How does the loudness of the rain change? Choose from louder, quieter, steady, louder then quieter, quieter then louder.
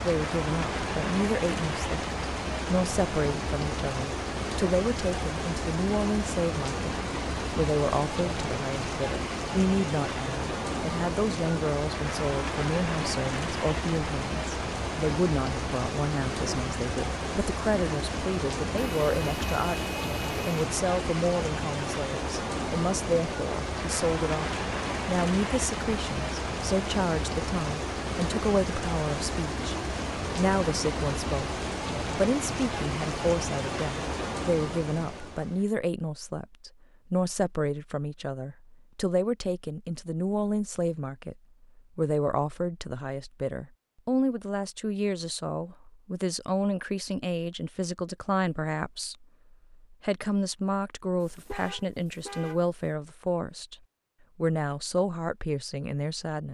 steady.